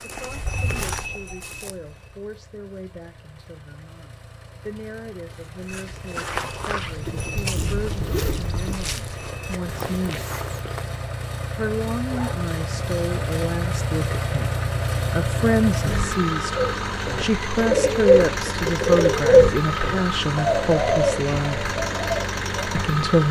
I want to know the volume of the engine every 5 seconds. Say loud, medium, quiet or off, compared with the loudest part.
quiet, quiet, loud, loud, loud.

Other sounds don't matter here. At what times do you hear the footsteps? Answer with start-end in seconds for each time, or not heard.
0.0-2.2, 5.3-11.0.